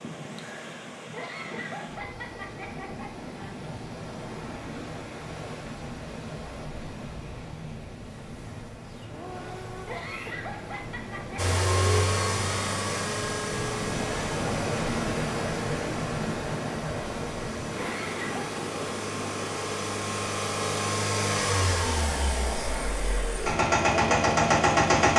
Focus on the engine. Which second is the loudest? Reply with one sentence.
The volume of the engine peaks at 25 seconds.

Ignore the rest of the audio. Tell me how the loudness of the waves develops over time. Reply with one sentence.
The loudness of the waves goes up, then down.